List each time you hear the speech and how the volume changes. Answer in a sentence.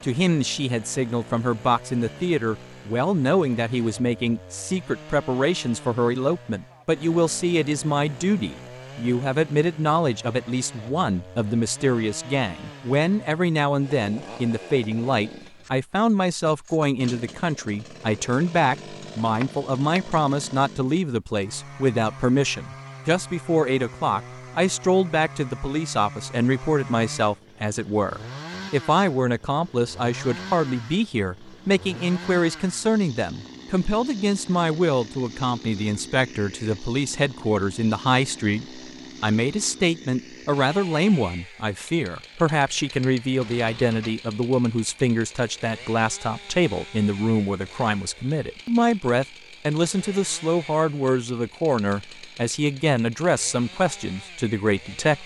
You can hear the speech from 0.0 to 55.2 s, at a steady volume.